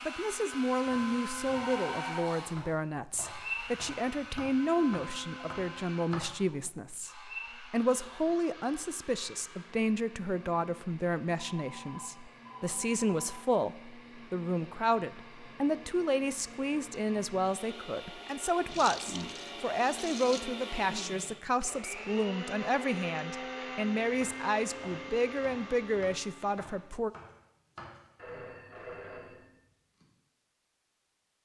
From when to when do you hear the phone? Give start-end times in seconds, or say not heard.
1.5-2.4, 11.3-13.4, 28.1-29.5.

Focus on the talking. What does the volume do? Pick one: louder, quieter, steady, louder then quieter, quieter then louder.
steady.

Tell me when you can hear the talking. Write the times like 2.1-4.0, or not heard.
0.1-27.1.